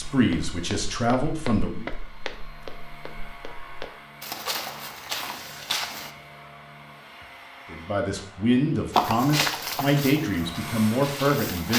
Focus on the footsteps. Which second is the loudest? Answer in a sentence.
The volume of the footsteps peaks at 9 seconds.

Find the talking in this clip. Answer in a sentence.
You can hear the talking from 0.0 to 1.9 s and from 7.7 to 11.7 s.